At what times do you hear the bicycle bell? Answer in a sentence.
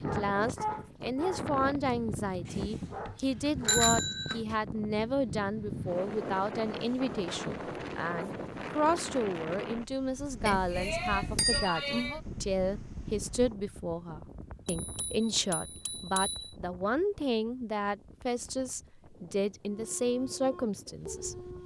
The bicycle bell can be heard from 2.5 to 4.4 s, from 10.4 to 12.2 s and from 14.7 to 16.6 s.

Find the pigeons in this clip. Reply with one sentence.
You can't hear the pigeons here.